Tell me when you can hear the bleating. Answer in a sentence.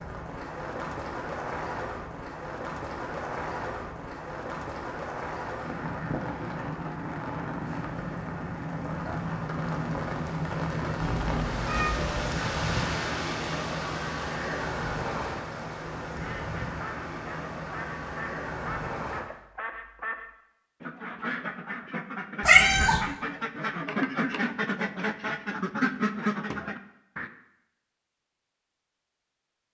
The bleating can't be heard in this clip.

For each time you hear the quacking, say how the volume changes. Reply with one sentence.
The quacking can be heard from 15.9 to 27.3 s, getting louder.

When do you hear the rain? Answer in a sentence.
You can hear the rain from 0.0 to 19.2 s.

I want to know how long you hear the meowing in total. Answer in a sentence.
The meowing can be heard for 2 seconds in total.